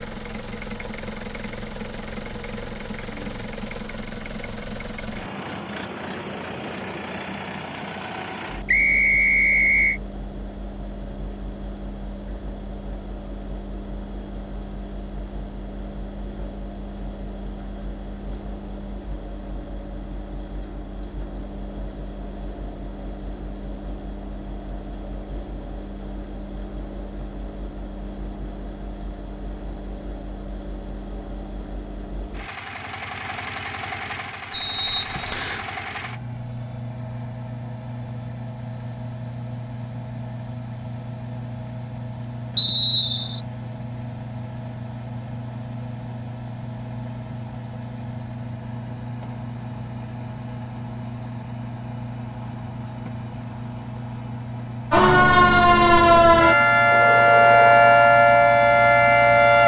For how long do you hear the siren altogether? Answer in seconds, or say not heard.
5 s.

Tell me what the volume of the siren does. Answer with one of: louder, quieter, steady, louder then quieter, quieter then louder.
steady.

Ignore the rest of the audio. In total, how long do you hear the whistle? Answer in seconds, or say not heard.
3 s.